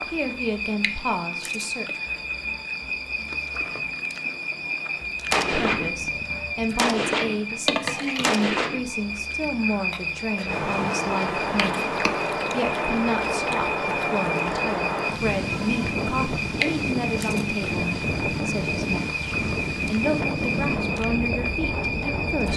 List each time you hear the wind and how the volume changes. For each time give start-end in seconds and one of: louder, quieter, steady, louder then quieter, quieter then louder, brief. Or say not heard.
10.4-22.5 steady.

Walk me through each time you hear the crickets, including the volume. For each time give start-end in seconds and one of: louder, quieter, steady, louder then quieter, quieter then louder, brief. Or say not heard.
0.0-22.5 steady.